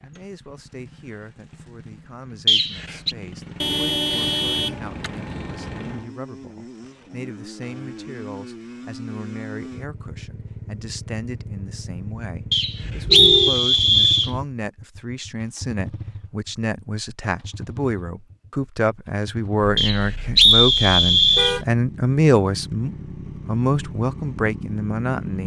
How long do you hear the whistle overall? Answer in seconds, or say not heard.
4 s.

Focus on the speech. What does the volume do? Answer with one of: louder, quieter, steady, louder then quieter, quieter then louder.
louder.